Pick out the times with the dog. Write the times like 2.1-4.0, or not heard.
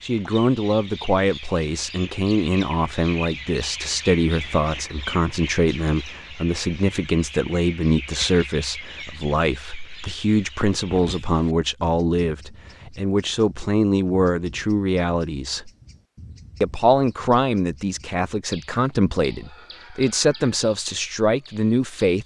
not heard.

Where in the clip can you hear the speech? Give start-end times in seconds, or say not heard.
0.0-15.7, 16.6-22.2.